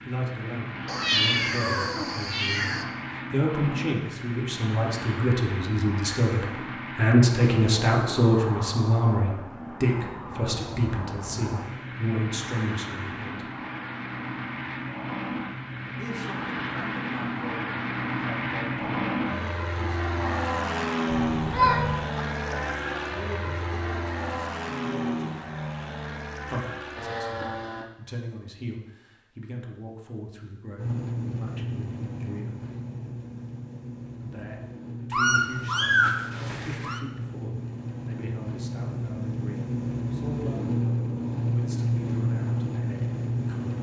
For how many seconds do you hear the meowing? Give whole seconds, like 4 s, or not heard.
5 s.